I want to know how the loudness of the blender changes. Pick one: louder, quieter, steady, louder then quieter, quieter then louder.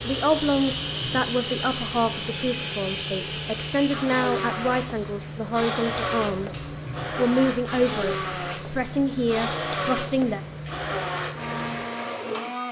steady.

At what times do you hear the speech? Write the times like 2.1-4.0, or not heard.
0.0-10.4.